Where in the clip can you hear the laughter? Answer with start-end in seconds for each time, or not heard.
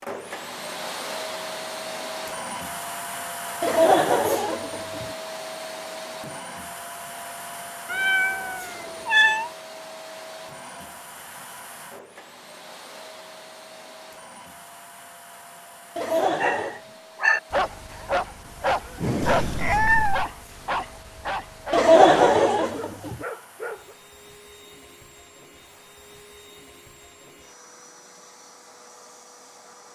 3.6-5.0, 15.9-16.8, 21.7-23.1.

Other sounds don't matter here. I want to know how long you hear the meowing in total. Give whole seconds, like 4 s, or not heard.
3 s.